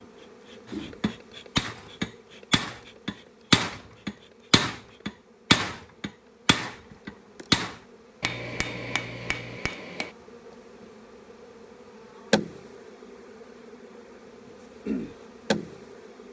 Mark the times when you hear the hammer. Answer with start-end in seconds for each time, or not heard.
0.7-10.1.